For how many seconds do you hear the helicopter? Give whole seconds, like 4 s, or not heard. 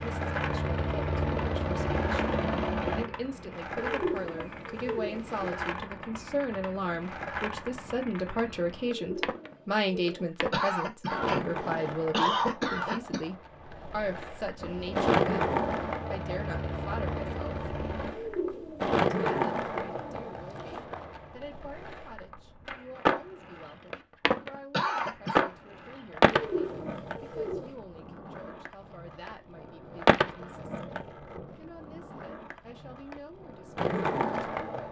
7 s.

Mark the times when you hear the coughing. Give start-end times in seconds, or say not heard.
10.5-13.2, 24.7-25.5.